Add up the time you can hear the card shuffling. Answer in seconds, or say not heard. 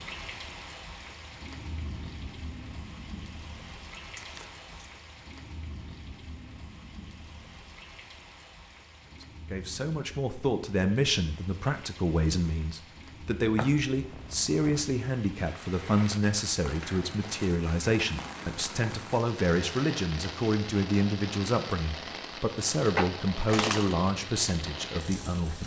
3 s.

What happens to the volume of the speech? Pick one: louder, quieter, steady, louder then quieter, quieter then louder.
steady.